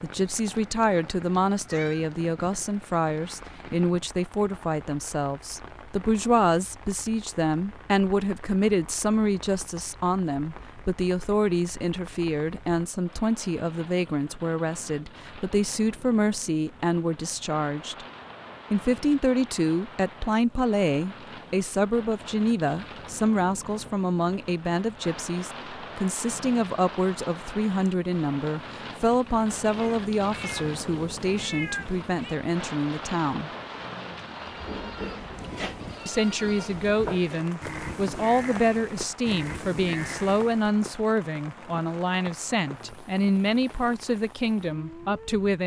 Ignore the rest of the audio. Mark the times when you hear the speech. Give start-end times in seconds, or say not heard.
0.0-18.1, 18.7-33.5, 36.0-45.6.